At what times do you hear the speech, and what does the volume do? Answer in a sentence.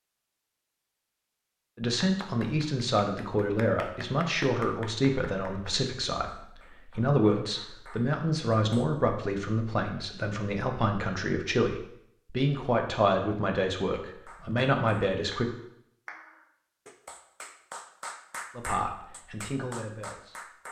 You can hear the speech from 1.8 to 15.5 s, at a steady volume; and briefly from 18.6 to 20.6 s.